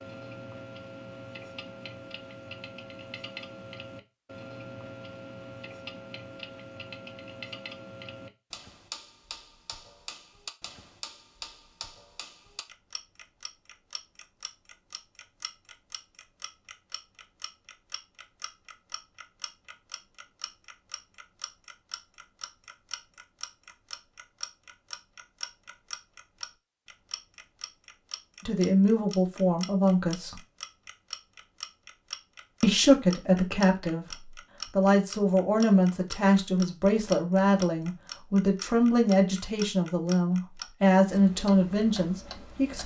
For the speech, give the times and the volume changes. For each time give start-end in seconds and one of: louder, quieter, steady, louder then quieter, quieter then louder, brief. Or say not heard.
28.4-30.4 brief
32.6-42.8 steady.